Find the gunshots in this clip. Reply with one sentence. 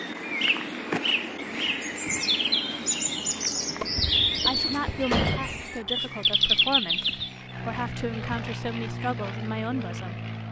You can hear the gunshots from 3.8 to 5.7 s.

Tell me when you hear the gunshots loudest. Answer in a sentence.
The volume of the gunshots peaks at 5 seconds.